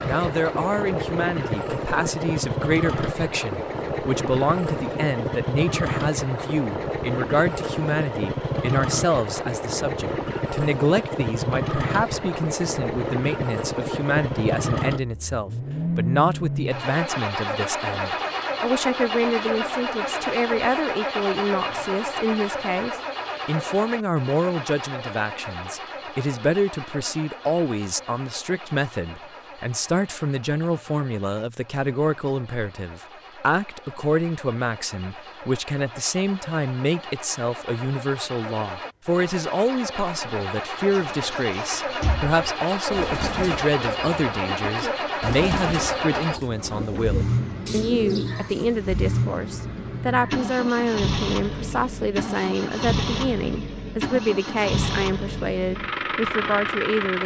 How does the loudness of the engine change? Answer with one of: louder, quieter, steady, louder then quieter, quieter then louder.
quieter then louder.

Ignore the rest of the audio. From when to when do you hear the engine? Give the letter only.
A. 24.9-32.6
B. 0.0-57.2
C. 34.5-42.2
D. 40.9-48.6
B.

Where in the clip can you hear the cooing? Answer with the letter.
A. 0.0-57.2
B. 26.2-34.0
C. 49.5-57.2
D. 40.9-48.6
D.